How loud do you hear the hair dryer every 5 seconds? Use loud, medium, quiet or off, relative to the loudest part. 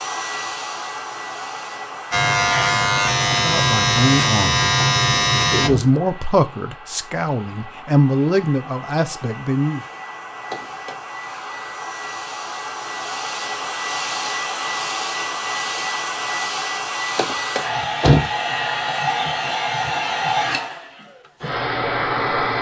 medium, quiet, medium, loud, loud.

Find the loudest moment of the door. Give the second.
18 s.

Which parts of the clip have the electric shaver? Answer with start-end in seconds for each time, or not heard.
2.1-5.7.